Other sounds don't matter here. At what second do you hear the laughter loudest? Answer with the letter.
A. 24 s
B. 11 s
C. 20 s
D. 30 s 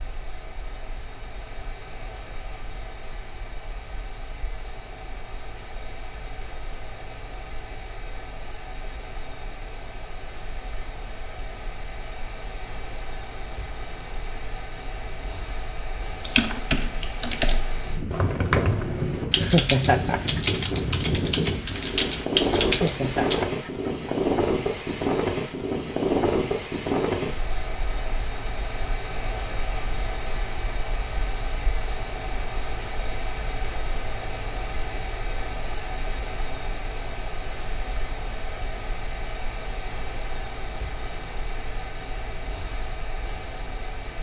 C.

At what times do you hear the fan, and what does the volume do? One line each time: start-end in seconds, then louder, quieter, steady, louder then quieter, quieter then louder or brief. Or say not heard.
0.0-44.1 louder then quieter.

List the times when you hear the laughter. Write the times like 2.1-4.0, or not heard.
19.4-20.4, 22.6-24.1.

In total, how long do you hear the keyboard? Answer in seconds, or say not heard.
7 s.